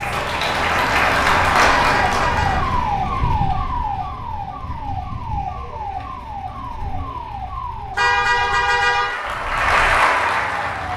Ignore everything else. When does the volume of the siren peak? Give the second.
3 s.